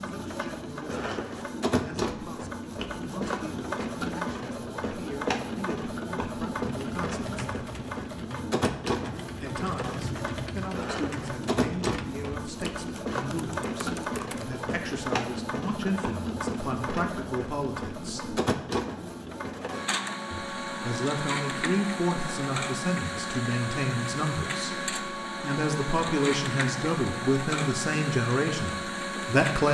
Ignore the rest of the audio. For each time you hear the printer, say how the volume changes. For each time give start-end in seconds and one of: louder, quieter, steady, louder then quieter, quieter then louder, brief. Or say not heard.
0.0-29.7 steady.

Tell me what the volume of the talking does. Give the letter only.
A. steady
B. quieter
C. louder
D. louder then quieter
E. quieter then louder
C.